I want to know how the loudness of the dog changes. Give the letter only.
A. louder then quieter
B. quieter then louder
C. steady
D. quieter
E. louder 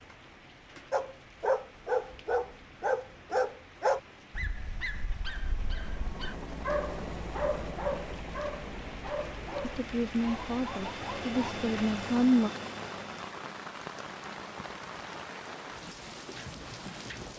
D.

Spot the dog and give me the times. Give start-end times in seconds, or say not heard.
0.9-11.3.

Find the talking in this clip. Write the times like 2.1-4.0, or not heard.
9.6-12.5.